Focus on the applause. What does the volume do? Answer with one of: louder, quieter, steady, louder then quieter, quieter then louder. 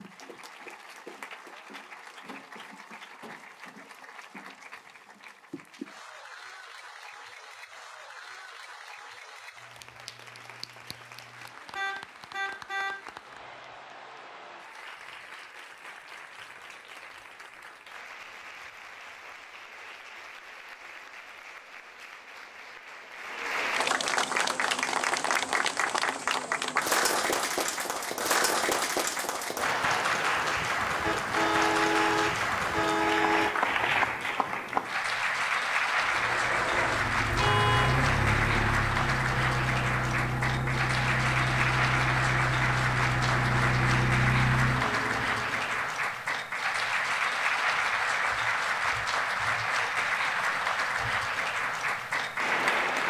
louder.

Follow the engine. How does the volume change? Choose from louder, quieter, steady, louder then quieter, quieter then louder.
steady.